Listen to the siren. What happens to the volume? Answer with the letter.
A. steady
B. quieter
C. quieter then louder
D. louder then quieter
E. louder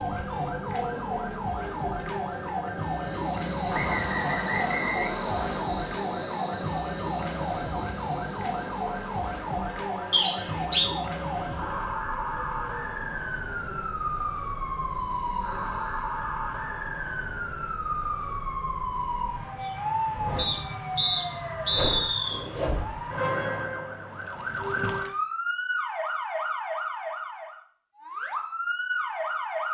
A.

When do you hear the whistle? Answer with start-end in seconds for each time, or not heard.
3.7-5.7, 10.1-10.9, 20.4-22.4.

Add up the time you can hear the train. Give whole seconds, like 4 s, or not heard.
16 s.